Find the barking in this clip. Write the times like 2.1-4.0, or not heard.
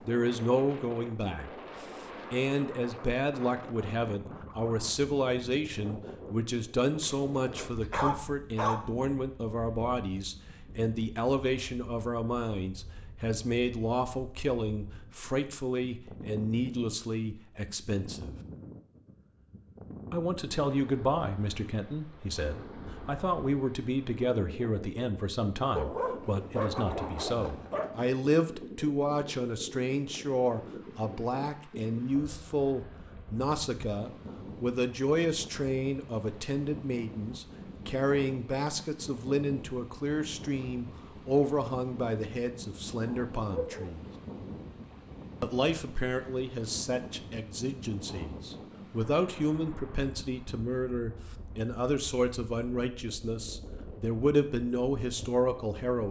7.0-8.8, 25.8-27.9, 43.4-44.0.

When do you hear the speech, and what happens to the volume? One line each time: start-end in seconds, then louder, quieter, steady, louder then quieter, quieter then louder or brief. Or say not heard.
0.1-18.4 steady
20.1-44.0 steady
45.4-56.0 louder.